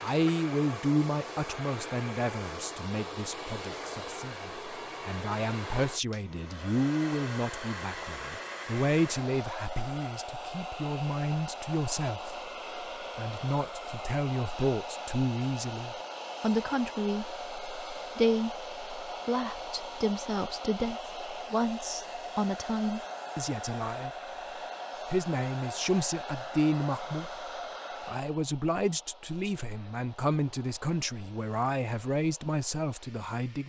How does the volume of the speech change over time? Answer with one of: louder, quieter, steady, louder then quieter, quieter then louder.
steady.